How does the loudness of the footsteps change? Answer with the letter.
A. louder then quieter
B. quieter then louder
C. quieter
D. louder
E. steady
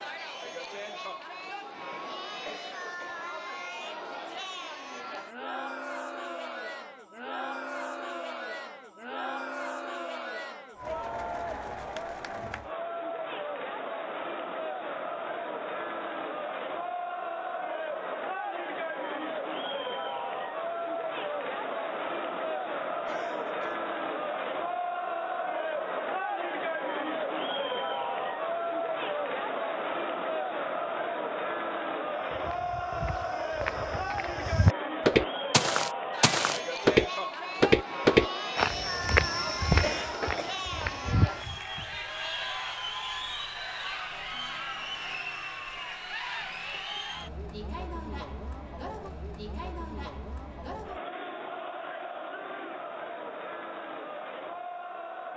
A.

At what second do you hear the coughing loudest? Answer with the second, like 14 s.
40 s.